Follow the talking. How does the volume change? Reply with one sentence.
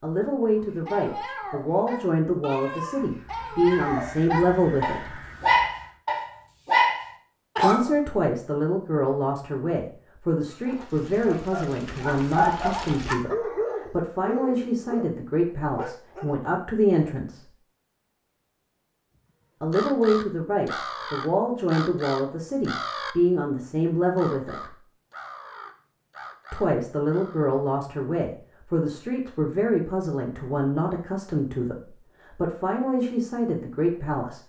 The loudness of the talking stays about the same.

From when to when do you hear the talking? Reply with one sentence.
You can hear the talking from 0.0 to 5.2 s, from 7.6 to 17.5 s, from 19.6 to 24.8 s and from 26.5 to 34.4 s.